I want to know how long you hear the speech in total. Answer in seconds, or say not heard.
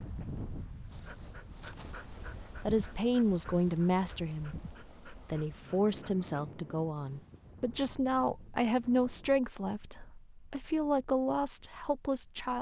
10 s.